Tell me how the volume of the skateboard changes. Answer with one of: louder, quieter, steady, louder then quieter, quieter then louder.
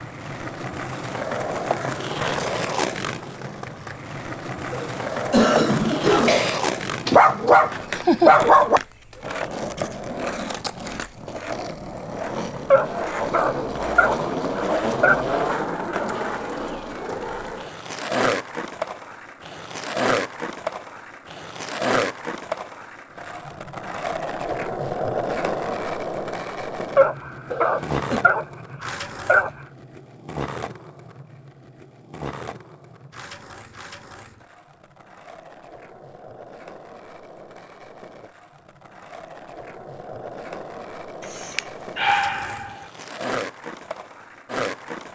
quieter.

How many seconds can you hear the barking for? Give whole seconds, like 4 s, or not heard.
8 s.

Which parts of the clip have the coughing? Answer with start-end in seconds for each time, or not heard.
4.7-6.6, 27.5-28.2.